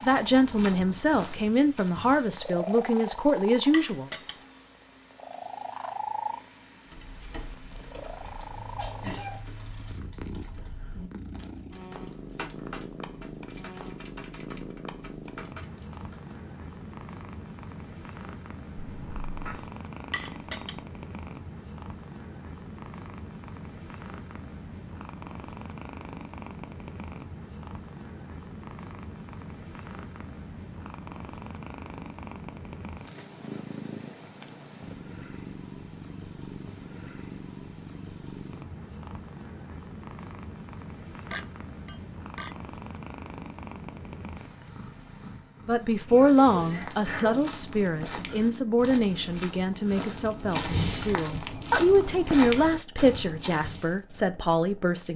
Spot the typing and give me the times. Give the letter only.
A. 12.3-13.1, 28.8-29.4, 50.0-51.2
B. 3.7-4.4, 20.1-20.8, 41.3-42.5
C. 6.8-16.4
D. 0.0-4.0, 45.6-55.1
C.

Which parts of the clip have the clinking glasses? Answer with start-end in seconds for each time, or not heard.
3.7-4.4, 20.1-20.8, 41.3-42.5.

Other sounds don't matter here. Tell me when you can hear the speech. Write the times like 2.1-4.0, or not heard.
0.0-4.0, 45.6-55.1.